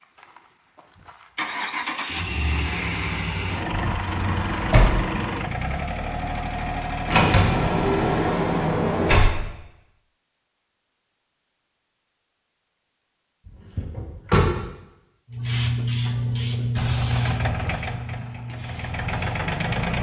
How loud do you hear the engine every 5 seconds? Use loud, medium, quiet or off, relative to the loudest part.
loud, loud, off, loud.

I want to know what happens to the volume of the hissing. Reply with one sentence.
The volume of the hissing goes down.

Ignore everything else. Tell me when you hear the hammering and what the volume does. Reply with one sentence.
You can't hear the hammering here.